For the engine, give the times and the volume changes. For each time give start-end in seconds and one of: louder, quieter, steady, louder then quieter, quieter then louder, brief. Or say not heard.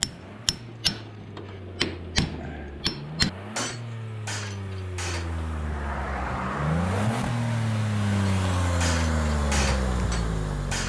0.0-10.8 louder.